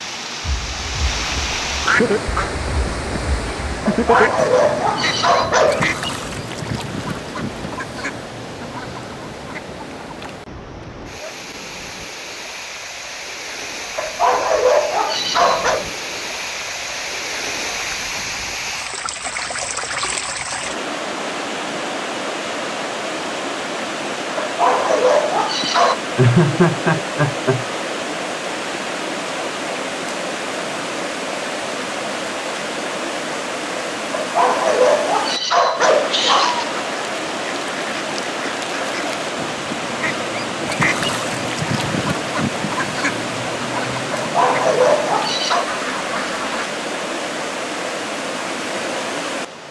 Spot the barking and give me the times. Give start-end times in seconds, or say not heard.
3.9-5.9, 13.9-15.8, 24.4-25.9, 34.1-36.9, 44.1-45.7.